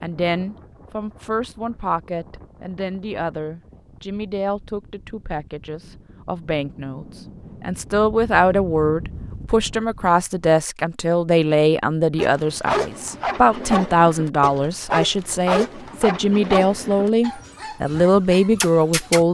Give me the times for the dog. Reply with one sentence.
The dog can be heard from 12.2 to 19.2 s.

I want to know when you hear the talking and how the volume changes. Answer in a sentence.
The talking can be heard from 0.0 to 19.2 s, getting louder.